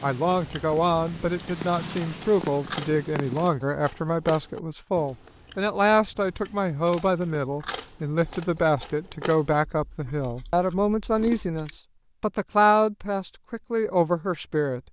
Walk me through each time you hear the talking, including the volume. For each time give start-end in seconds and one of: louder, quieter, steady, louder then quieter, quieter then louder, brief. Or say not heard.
0.0-14.8 steady.